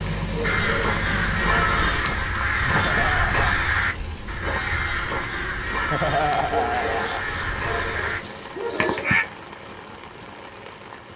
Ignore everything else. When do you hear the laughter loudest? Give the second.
6 s.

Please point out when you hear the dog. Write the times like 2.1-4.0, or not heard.
0.3-2.2, 6.5-9.2.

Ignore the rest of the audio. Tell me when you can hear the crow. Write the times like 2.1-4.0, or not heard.
0.4-9.2.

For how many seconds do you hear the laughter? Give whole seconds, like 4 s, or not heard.
2 s.